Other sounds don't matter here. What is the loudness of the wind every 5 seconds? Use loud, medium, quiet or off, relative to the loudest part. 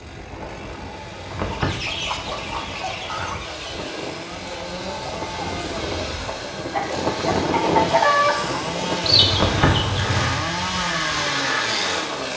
medium, loud, medium.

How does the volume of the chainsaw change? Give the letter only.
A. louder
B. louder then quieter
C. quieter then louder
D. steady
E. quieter
A.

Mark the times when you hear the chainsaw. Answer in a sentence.
The chainsaw can be heard from 0.0 to 12.3 s.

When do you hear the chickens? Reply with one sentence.
You can hear the chickens from 1.5 to 10.4 s.